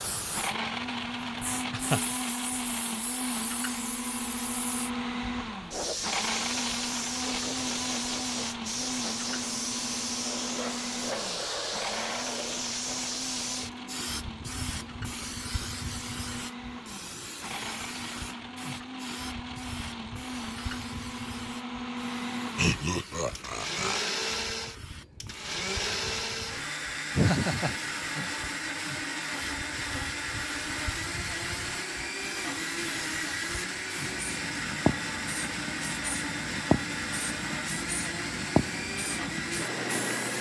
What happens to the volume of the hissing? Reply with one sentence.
The loudness of the hissing goes down, then up.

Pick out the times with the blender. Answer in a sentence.
The blender can be heard from 0.2 to 40.3 s.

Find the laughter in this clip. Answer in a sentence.
You can hear the laughter from 1.7 to 2.1 s, from 22.6 to 24.1 s and from 27.1 to 28.3 s.